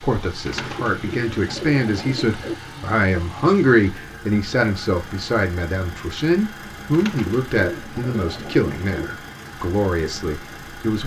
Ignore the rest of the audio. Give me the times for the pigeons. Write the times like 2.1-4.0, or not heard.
0.5-2.5, 6.9-9.2.